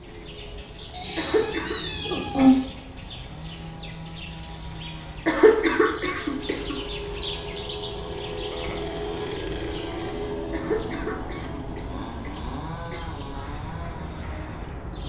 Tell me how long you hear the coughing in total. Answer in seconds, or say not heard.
5 s.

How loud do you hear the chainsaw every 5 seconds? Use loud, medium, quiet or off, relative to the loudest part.
medium, loud, loud.